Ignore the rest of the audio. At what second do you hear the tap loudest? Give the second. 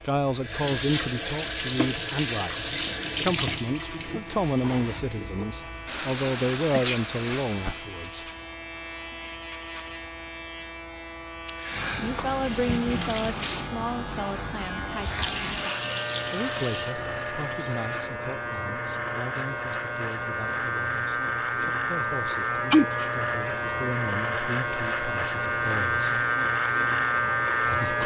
3 s.